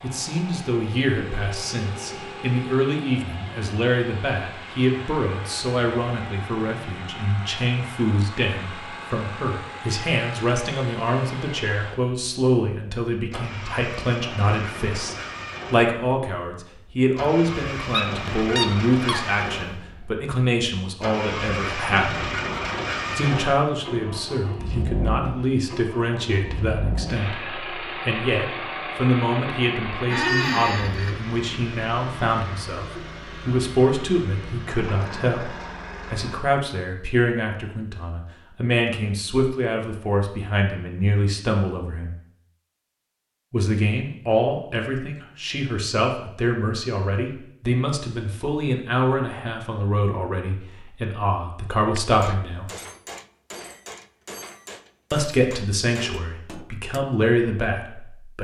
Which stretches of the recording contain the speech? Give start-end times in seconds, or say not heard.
0.0-22.3, 23.1-35.5, 36.1-42.1, 43.5-52.7, 55.1-58.4.